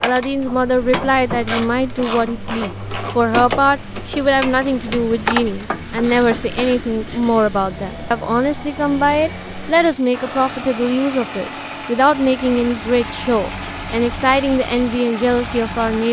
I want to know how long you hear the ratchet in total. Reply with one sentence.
The ratchet can be heard for 7 seconds in total.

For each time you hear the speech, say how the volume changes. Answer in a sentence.
The speech can be heard from 0.0 to 16.0 s, at a steady volume.